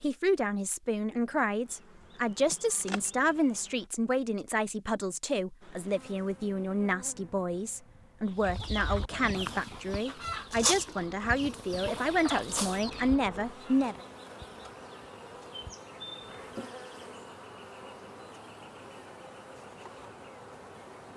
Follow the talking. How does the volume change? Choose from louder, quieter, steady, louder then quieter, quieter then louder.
steady.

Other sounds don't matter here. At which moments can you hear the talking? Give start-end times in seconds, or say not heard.
0.0-13.9.